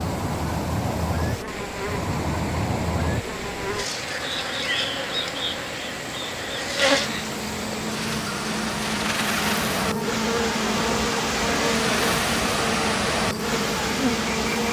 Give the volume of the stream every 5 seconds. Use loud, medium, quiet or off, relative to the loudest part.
medium, medium, loud.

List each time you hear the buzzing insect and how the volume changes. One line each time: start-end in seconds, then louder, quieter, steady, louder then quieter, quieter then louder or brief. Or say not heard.
0.0-14.6 steady.